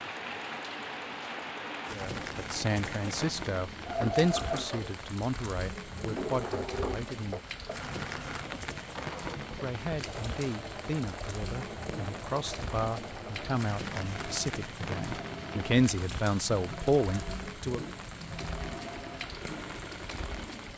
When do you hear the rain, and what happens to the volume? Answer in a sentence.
The rain can be heard from 0.0 to 20.7 s, at a steady volume.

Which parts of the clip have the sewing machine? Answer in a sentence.
You can hear the sewing machine from 0.0 to 20.7 s.